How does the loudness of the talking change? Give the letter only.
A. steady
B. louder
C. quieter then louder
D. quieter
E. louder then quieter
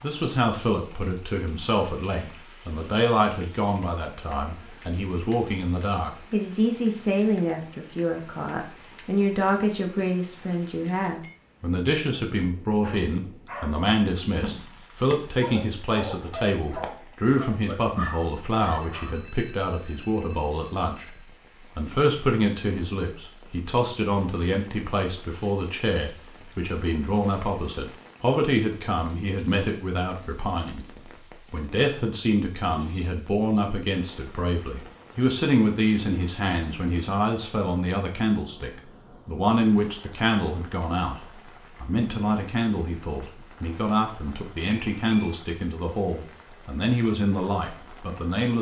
A.